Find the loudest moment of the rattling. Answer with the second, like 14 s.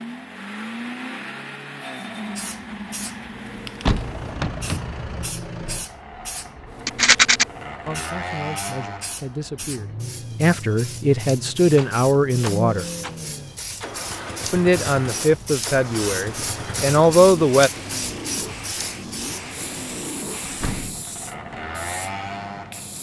7 s.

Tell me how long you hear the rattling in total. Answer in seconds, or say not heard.
2 s.